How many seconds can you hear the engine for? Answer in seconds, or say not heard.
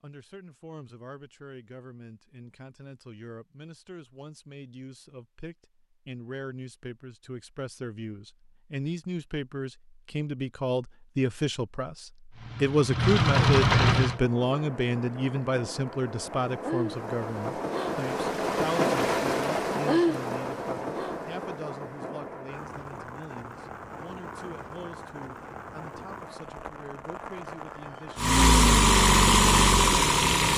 4 s.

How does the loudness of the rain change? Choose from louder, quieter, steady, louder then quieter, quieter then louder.
louder then quieter.